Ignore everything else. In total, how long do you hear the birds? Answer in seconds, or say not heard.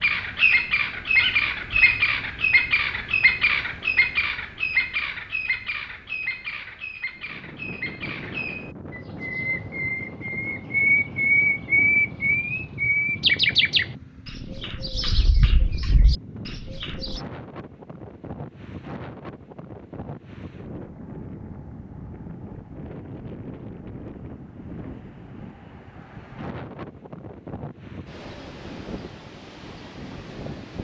17 s.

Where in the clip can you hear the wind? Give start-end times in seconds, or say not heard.
7.1-30.7.